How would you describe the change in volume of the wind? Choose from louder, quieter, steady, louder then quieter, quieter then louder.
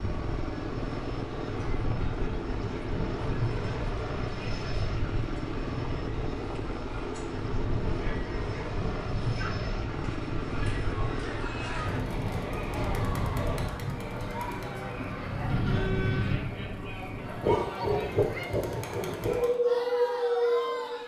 louder.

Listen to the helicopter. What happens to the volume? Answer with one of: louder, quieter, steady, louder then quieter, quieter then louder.
steady.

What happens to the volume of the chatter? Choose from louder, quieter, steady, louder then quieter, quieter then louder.
louder.